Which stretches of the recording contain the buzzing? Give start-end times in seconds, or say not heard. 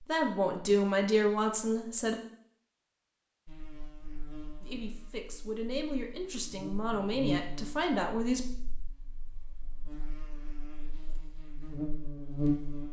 3.5-12.8.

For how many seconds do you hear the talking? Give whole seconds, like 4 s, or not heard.
6 s.